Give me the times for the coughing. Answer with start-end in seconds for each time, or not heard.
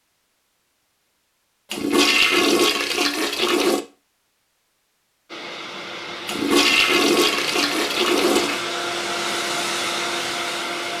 not heard.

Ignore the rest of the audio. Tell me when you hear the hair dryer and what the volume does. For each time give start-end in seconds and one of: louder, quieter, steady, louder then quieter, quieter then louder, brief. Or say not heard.
5.2-10.9 louder.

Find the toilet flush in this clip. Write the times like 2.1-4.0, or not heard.
1.7-3.8, 6.2-8.6.